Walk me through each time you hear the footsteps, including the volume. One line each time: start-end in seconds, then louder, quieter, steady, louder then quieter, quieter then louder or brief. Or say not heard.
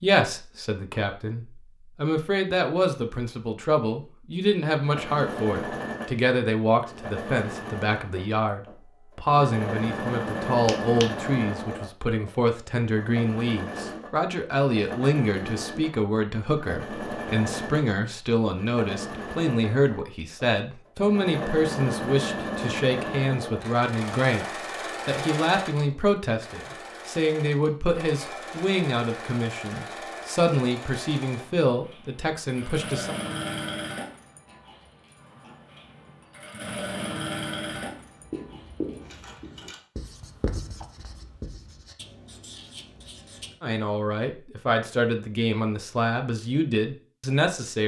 not heard.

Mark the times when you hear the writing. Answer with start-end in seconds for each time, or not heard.
37.8-43.5.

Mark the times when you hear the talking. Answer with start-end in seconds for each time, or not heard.
0.0-33.1, 43.6-47.8.